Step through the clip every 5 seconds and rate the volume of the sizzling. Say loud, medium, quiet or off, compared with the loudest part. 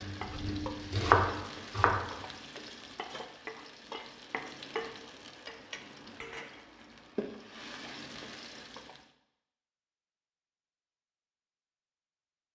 loud, loud, off.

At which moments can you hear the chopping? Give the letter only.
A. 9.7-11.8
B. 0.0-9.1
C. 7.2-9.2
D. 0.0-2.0
D.